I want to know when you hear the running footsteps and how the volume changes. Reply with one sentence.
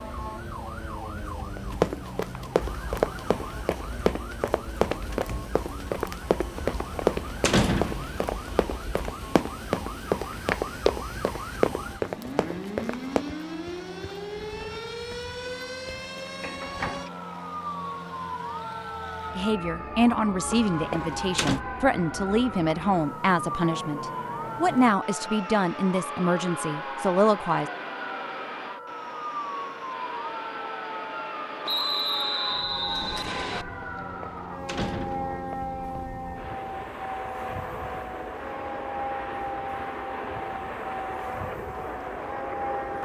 The running footsteps can be heard from 1.6 to 13.3 s, at a steady volume.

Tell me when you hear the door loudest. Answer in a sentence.
The loudest moment of the door is at 8 seconds.